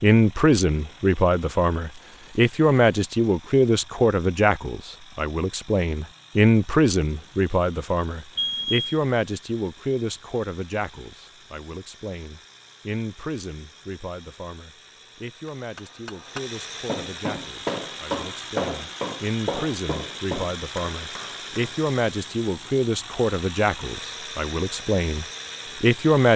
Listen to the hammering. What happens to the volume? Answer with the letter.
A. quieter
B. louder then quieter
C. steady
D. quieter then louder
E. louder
B.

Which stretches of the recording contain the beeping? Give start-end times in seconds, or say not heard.
8.3-9.0.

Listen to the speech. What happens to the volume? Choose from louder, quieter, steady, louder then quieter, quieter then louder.
quieter then louder.